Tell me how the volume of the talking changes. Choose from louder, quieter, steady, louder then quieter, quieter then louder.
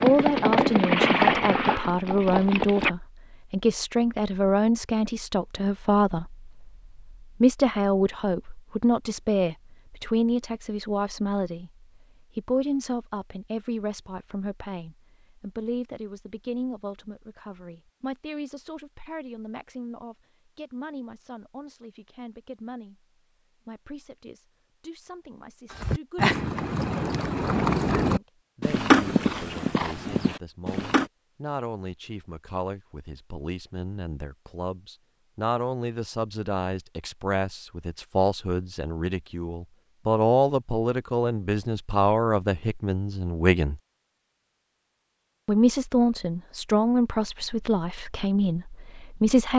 quieter then louder.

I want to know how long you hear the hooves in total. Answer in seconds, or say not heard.
8 s.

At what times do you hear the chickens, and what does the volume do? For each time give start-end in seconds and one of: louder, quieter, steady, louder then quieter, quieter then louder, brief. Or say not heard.
not heard.